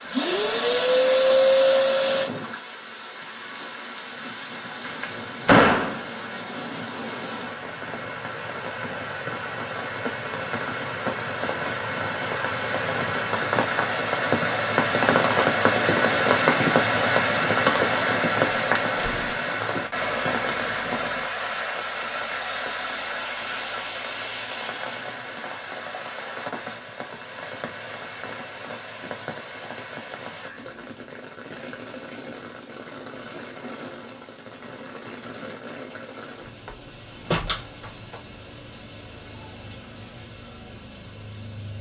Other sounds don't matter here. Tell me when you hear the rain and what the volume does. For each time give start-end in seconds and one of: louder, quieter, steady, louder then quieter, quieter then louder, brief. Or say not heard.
0.0-41.7 louder then quieter.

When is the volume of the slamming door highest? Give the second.
6 s.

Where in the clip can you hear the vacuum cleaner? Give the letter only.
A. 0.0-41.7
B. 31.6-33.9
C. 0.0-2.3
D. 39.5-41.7
C.